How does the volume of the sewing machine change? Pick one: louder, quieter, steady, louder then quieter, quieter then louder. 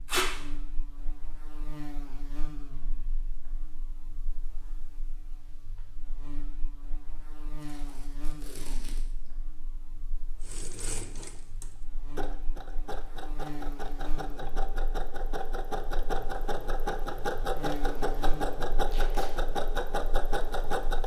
louder.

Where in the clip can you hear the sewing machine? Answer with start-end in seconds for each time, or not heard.
10.4-21.0.